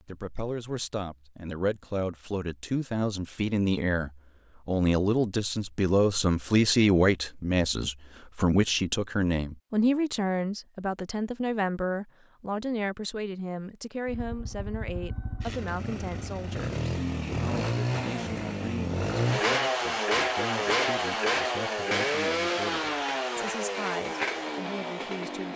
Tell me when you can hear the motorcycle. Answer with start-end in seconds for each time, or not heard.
14.1-25.5.